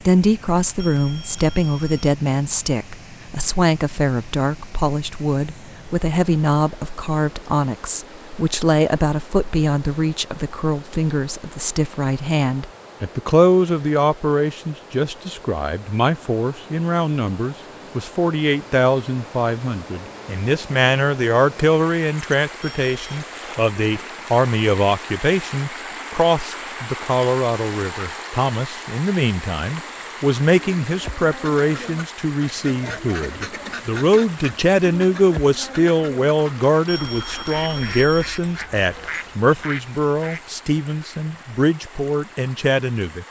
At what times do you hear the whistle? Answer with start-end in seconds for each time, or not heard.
not heard.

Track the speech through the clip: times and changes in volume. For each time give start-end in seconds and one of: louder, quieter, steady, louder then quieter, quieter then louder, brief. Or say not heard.
0.1-43.2 steady.